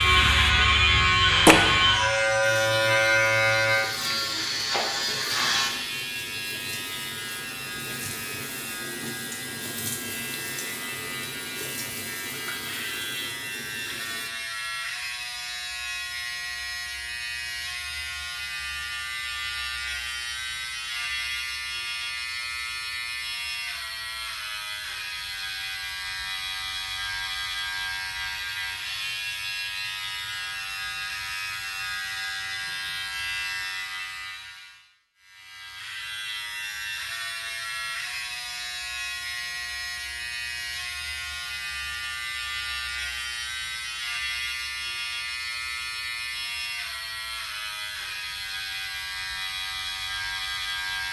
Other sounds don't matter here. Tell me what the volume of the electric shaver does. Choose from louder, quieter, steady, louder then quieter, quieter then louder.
quieter.